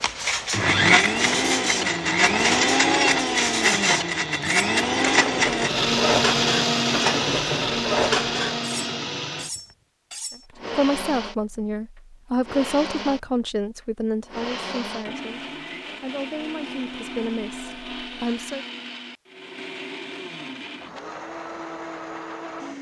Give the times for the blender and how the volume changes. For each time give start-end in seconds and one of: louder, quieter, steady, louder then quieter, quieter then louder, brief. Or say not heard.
0.0-22.7 quieter.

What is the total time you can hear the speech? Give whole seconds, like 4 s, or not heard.
8 s.